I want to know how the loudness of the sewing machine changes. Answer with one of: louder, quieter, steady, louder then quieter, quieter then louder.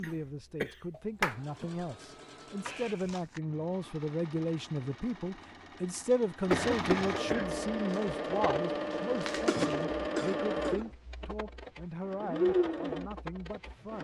louder.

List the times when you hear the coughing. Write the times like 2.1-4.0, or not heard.
0.0-1.9, 6.5-7.5, 9.4-10.8.